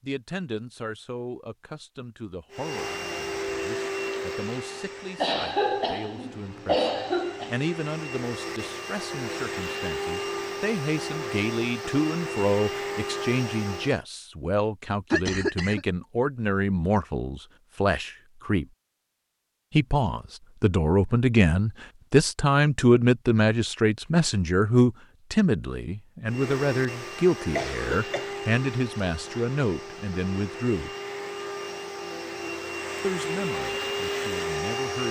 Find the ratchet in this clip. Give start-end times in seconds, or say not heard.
not heard.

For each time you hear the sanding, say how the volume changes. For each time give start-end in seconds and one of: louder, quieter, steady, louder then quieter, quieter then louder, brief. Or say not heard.
not heard.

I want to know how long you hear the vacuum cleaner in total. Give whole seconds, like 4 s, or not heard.
20 s.